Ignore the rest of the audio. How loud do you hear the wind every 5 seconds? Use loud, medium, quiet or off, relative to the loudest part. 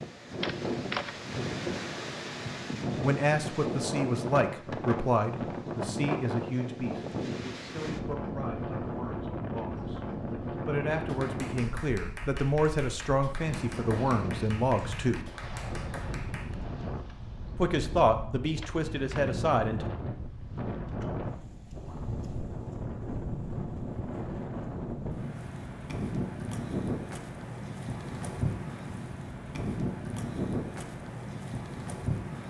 loud, loud, loud, medium, loud, loud, loud.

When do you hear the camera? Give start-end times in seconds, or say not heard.
0.4-1.2, 18.6-19.4.